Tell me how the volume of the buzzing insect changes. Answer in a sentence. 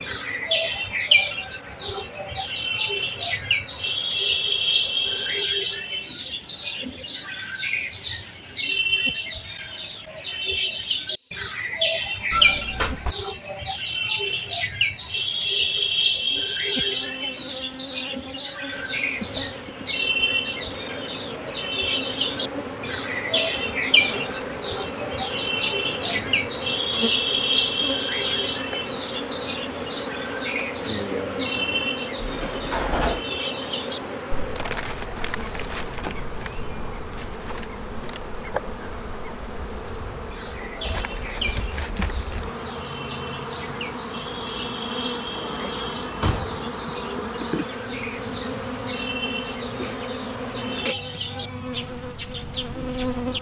The volume of the buzzing insect goes up.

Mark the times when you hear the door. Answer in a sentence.
The door can be heard from 12.3 to 13.2 s, from 32.3 to 33.2 s and from 46.0 to 46.7 s.